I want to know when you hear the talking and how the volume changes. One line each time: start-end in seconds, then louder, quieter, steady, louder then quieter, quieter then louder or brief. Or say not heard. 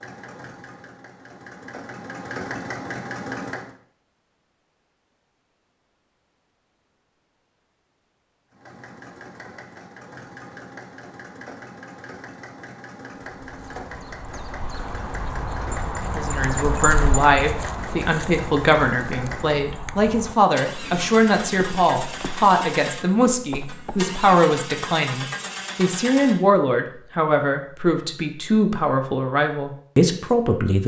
16.1-30.8 steady.